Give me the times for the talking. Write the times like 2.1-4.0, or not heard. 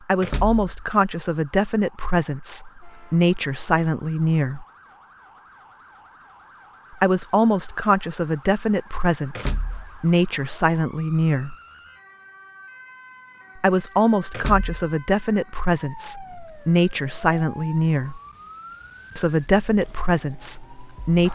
0.1-4.7, 7.0-11.6, 13.6-18.2, 19.1-21.3.